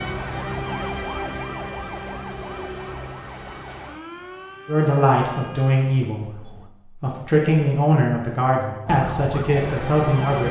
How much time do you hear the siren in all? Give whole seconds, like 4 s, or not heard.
8 s.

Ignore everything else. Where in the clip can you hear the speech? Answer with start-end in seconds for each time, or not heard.
4.7-10.4.